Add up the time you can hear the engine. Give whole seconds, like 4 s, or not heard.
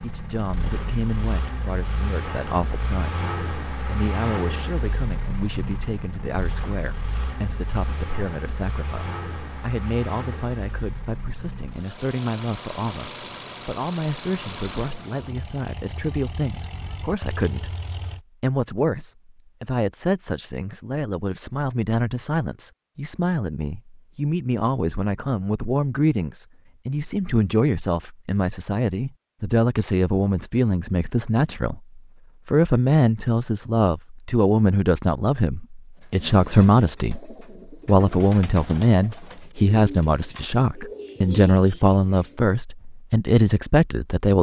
18 s.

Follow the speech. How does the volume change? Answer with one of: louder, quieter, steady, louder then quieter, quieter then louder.
louder.